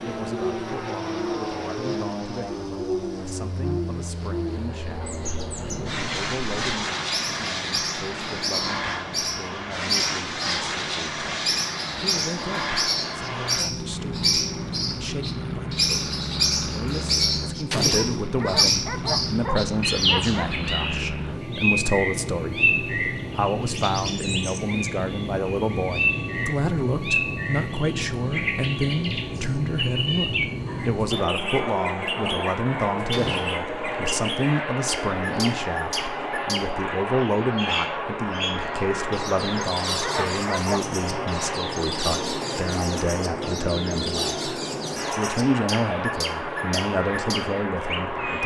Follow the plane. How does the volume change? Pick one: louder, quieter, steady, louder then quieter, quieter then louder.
steady.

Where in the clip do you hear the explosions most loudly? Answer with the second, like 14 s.
18 s.